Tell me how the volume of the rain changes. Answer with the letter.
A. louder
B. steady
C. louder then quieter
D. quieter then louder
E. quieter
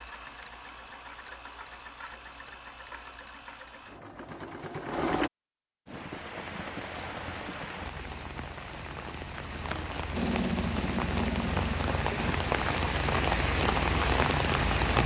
A.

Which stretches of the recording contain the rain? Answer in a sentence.
You can hear the rain from 5.8 to 15.0 s.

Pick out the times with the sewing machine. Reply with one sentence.
You can hear the sewing machine from 0.0 to 5.3 s and from 10.1 to 12.3 s.